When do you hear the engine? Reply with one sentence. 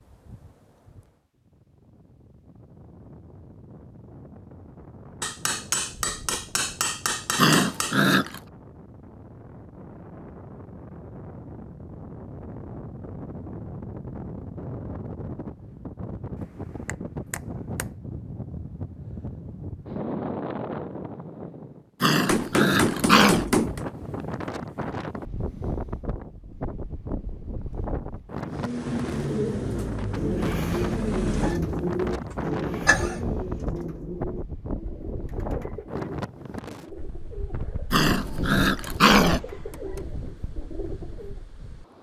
You can hear the engine from 28.5 to 33.2 s.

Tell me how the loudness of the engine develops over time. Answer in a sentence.
The loudness of the engine goes down.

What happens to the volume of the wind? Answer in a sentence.
The loudness of the wind goes up.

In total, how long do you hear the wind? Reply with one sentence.
The wind can be heard for 42 seconds in total.